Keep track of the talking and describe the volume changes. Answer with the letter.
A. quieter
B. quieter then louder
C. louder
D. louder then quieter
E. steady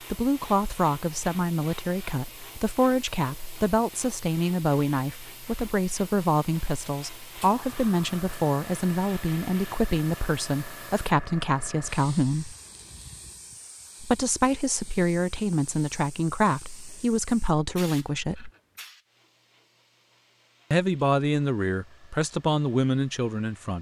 E.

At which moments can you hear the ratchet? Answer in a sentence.
You can't hear the ratchet here.